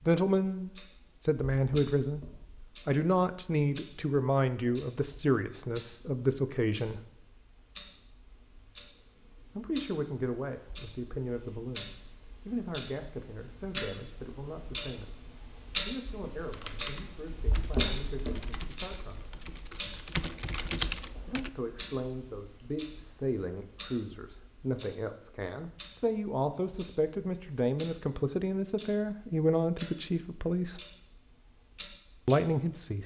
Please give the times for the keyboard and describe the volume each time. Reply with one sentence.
You can hear the keyboard from 16.4 to 21.5 s, getting quieter then louder.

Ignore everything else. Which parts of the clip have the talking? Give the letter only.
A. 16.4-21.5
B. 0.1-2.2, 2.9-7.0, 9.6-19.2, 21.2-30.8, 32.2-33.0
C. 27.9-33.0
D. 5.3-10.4
B.